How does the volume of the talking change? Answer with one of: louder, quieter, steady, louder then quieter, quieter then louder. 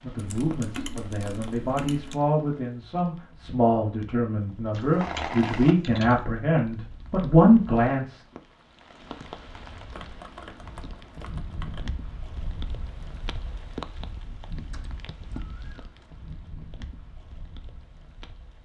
louder.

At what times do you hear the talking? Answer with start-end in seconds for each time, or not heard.
0.0-8.2.